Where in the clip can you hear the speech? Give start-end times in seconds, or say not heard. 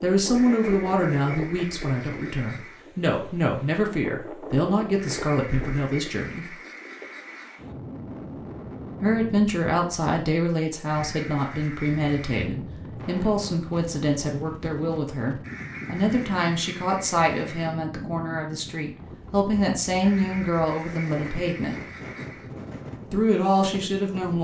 0.0-6.5, 9.0-21.8, 23.1-24.3.